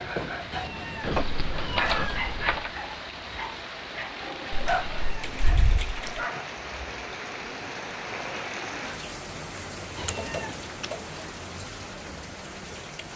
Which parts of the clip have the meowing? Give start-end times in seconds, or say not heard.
0.5-2.4, 4.7-5.4, 9.9-10.8.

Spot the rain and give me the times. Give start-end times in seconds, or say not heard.
0.0-13.1.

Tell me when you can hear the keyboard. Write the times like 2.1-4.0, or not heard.
1.0-2.7, 4.5-6.2, 10.1-11.0.